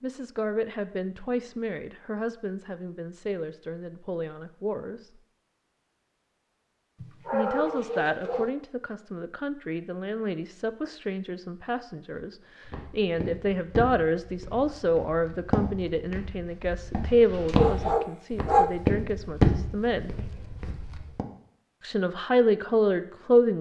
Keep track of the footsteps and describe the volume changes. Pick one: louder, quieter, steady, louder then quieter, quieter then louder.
louder.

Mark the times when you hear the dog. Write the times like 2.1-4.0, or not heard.
7.0-8.5, 17.6-18.7.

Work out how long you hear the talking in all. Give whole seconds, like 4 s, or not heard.
20 s.